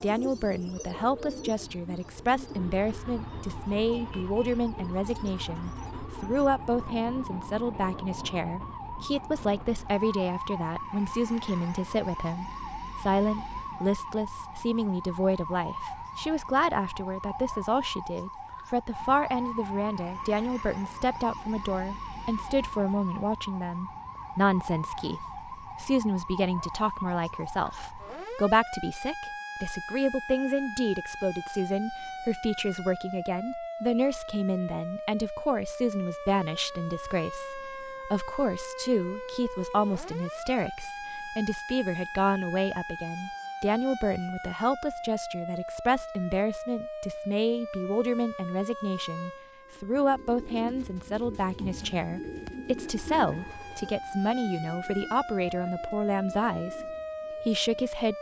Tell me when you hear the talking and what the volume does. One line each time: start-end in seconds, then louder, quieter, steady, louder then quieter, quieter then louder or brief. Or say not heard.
0.0-58.1 steady.